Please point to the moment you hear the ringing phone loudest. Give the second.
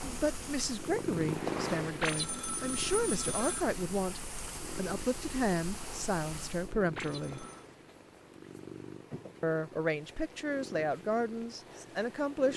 2 s.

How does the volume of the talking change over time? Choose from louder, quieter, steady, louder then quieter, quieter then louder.
steady.